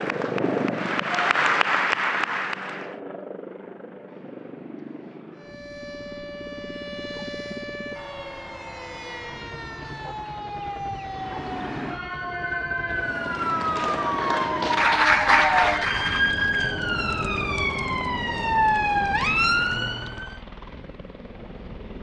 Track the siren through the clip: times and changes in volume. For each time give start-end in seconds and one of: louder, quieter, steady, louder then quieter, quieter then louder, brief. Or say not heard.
5.3-20.4 louder.